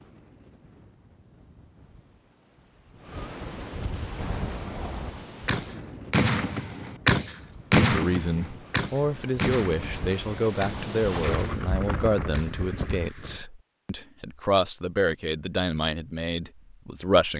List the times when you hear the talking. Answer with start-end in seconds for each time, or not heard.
7.8-17.3.